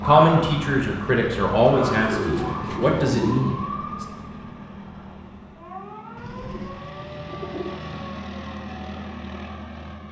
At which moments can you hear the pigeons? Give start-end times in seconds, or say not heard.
1.9-3.5, 6.2-8.1.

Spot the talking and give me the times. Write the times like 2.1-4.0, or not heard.
0.0-4.0.